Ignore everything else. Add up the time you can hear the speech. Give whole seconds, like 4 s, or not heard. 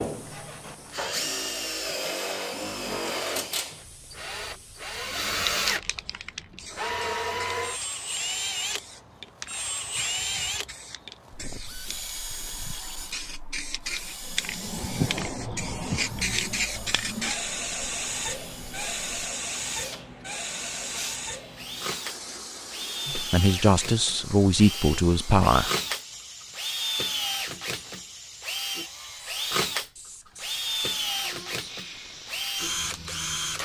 3 s.